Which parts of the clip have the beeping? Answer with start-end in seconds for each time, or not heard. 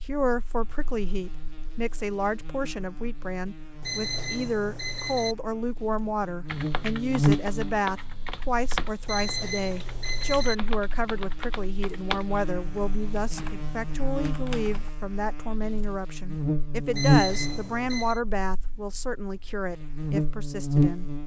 3.8-5.3, 9.1-10.6, 16.9-18.2.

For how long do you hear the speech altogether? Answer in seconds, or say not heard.
21 s.